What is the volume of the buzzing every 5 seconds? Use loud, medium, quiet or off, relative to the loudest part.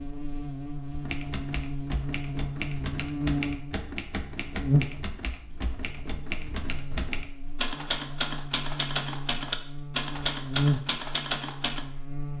loud, medium, loud.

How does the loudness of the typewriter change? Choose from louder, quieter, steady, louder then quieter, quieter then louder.
louder.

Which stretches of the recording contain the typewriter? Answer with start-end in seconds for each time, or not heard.
0.9-11.8.